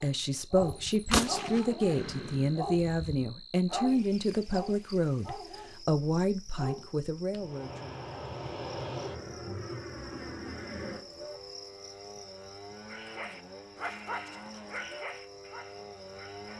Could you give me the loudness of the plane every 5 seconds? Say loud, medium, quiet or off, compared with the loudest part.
off, loud, medium, medium.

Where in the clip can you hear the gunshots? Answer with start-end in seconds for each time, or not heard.
0.6-3.2.